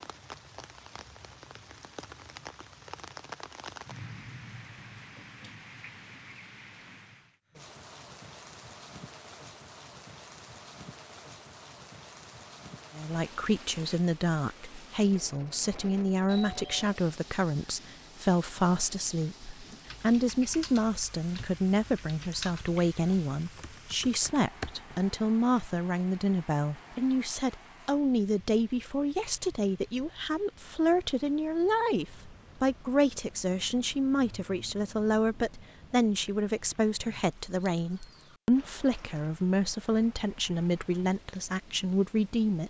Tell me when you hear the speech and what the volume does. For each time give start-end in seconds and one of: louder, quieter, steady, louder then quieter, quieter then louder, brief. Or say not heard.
12.9-42.6 steady.